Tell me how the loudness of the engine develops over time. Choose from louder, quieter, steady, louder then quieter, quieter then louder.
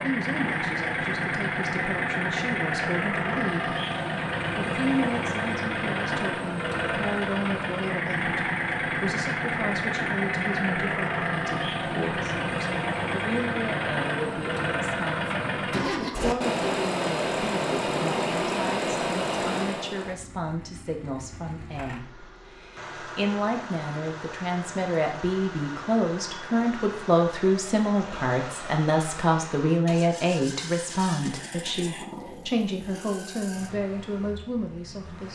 quieter.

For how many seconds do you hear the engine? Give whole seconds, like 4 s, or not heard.
35 s.